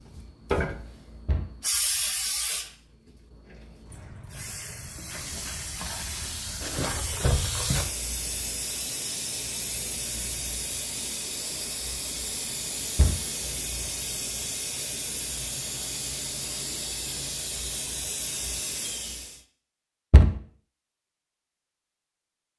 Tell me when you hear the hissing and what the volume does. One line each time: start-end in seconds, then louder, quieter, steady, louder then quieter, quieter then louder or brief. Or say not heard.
0.0-19.4 steady.